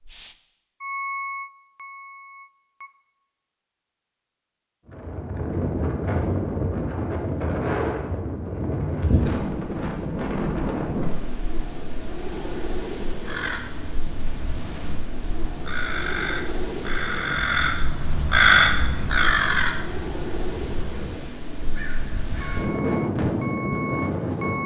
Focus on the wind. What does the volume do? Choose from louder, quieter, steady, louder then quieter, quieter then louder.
quieter then louder.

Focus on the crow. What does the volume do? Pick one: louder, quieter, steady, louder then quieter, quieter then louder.
louder then quieter.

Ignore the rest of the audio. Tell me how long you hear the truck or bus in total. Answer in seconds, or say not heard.
5 s.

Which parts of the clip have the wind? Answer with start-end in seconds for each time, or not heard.
4.8-24.6.